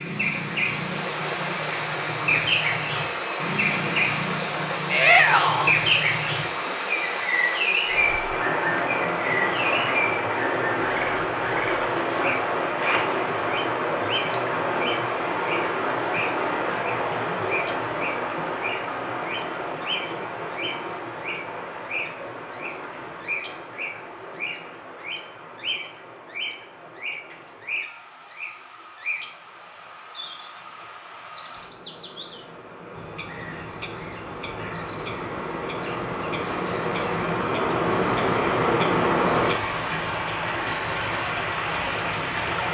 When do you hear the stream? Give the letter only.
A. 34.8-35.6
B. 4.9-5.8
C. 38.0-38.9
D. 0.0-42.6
D.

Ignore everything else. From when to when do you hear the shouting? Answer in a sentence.
You can hear the shouting from 4.9 to 5.8 s.